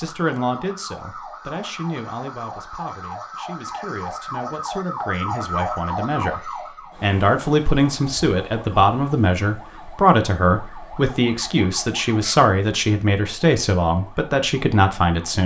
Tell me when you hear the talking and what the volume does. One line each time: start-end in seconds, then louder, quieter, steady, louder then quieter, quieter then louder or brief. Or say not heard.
0.0-15.4 louder.